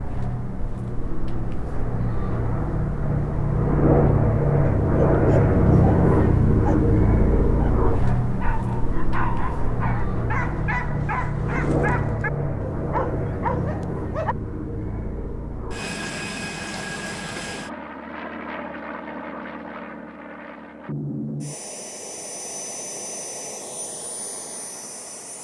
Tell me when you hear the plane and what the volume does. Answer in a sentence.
You can hear the plane from 0.0 to 25.3 s, getting quieter.